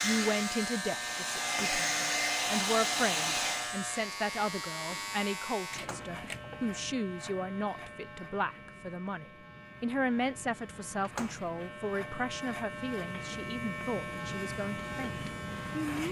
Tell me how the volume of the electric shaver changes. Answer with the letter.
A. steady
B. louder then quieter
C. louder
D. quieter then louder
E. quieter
D.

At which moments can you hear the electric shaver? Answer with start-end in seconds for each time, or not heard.
0.0-16.0.